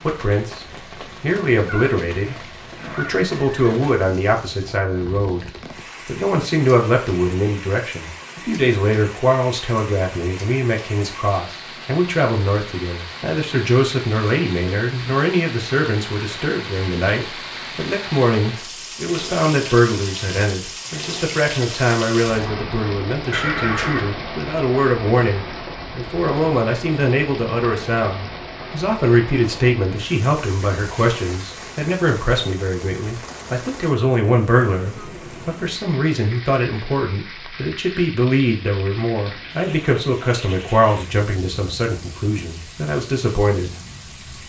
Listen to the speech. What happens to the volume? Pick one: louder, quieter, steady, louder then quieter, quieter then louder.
steady.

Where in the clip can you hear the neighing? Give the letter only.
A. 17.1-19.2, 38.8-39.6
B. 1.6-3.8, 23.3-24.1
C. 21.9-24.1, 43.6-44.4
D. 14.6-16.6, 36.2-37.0
B.